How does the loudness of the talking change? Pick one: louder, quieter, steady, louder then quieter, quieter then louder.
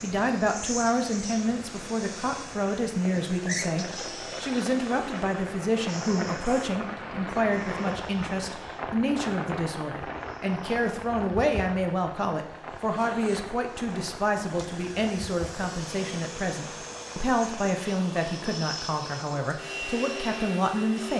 steady.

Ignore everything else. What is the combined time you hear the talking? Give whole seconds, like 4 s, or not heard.
21 s.